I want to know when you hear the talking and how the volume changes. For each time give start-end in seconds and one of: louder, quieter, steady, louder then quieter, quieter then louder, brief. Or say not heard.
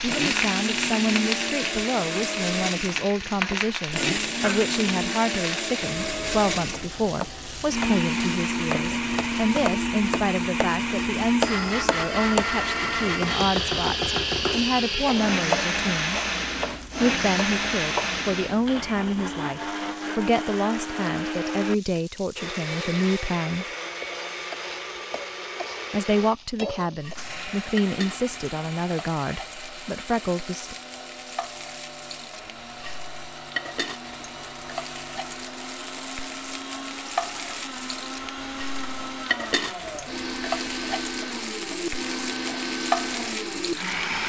0.0-16.2 steady
17.0-23.6 steady
25.9-30.8 steady.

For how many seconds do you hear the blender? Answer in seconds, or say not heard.
44 s.